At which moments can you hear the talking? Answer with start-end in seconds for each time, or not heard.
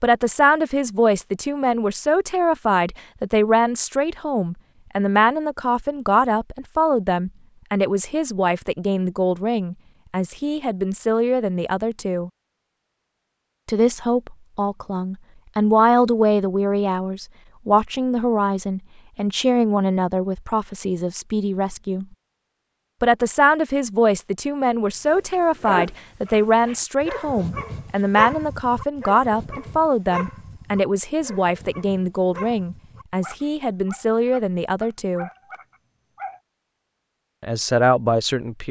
0.0-12.3, 13.7-22.1, 23.0-35.3, 37.4-38.6.